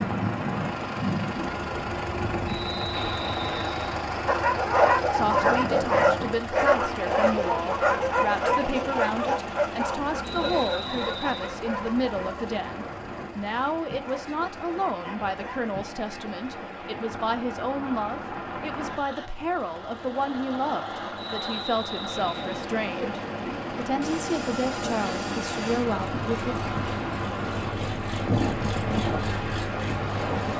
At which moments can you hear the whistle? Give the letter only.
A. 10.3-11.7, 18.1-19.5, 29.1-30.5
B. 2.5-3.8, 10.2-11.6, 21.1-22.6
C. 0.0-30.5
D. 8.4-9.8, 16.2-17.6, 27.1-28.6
B.